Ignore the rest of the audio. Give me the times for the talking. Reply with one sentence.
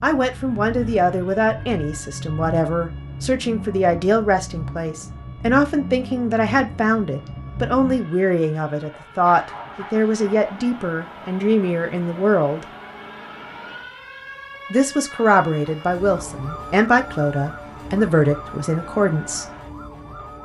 The talking can be heard from 0.0 to 12.7 s and from 14.7 to 19.4 s.